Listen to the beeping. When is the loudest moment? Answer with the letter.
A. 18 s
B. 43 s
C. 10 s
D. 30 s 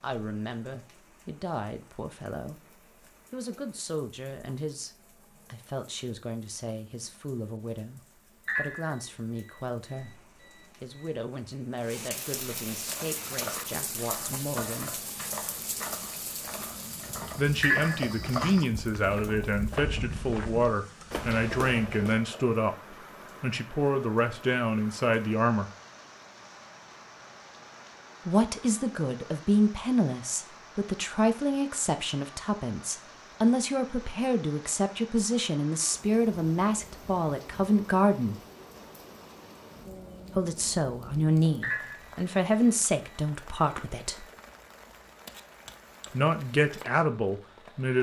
A.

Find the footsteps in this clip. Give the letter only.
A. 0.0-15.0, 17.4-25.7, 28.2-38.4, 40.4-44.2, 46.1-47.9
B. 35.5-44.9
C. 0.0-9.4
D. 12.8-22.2
D.